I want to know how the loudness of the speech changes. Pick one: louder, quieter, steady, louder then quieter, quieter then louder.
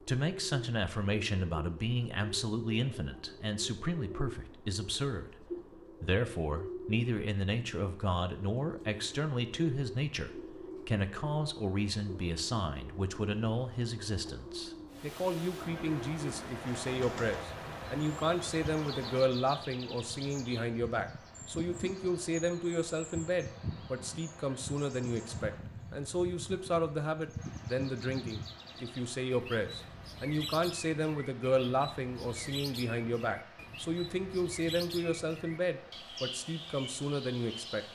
steady.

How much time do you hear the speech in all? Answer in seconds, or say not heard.
38 s.